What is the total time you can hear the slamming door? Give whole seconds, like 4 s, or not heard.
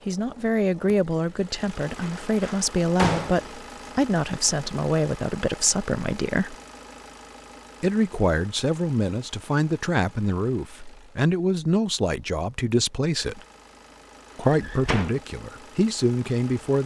2 s.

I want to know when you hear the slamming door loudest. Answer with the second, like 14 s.
3 s.